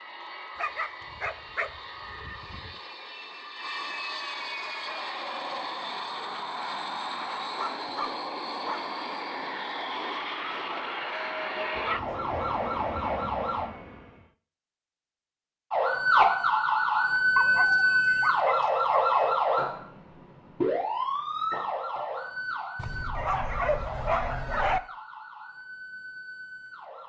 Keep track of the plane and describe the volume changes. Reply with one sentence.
The loudness of the plane goes up.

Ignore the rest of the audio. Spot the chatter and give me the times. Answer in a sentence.
The chatter can't be heard in this clip.